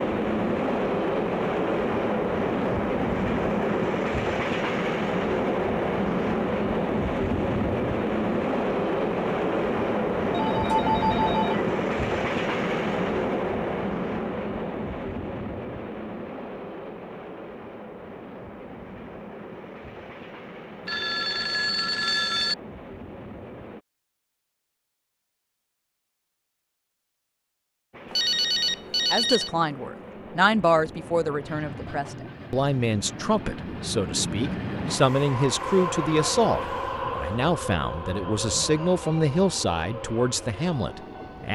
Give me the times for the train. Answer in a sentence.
The train can be heard from 0.0 to 23.8 s and from 27.9 to 41.4 s.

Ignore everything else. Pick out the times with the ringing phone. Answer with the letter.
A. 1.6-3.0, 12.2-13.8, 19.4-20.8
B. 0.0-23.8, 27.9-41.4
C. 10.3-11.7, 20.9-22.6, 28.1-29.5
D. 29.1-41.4
C.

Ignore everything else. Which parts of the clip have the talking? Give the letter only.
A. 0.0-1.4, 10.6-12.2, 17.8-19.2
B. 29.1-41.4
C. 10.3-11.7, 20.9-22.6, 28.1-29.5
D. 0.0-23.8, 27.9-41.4
B.